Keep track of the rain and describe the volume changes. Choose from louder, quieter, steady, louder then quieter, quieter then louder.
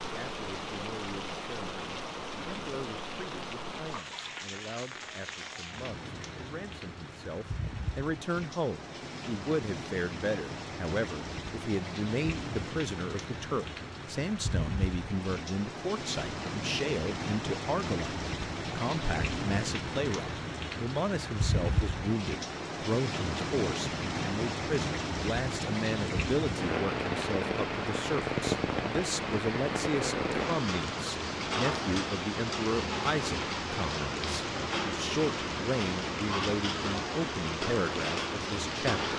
louder.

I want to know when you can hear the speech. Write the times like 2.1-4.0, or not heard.
0.0-39.1.